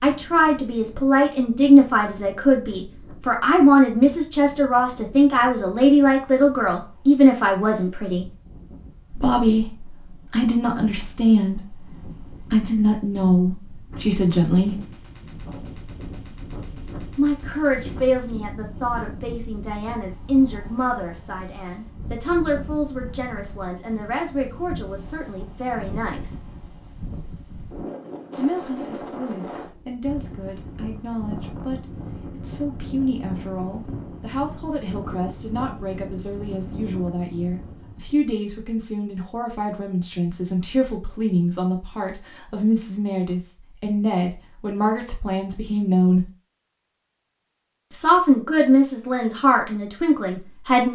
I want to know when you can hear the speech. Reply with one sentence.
The speech can be heard from 0.0 to 8.2 s, from 9.1 to 14.8 s, from 17.1 to 26.4 s, from 28.4 to 46.3 s and from 47.9 to 50.9 s.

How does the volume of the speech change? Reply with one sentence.
The volume of the speech goes down, then up.